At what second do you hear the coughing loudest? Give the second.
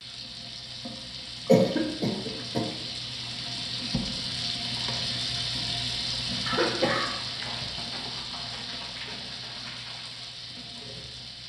2 s.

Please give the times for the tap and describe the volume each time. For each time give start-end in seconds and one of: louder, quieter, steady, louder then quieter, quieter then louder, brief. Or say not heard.
0.0-11.4 louder then quieter.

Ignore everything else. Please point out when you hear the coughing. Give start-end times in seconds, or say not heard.
1.4-2.6, 6.5-7.7.